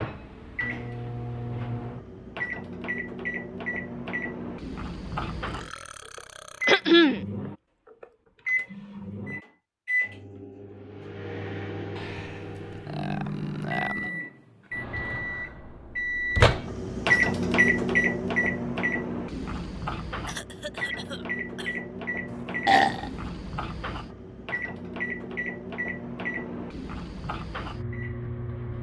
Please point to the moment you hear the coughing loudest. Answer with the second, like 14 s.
7 s.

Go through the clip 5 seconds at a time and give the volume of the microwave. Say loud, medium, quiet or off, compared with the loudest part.
medium, medium, medium, loud, medium, medium.